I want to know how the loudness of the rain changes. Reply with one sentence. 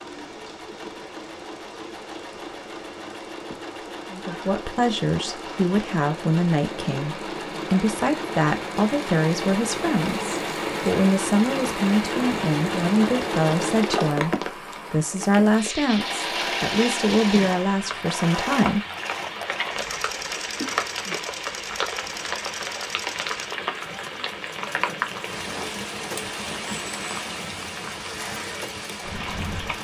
The volume of the rain goes up.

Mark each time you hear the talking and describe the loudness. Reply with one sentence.
The talking can be heard from 4.1 to 18.8 s, at a steady volume.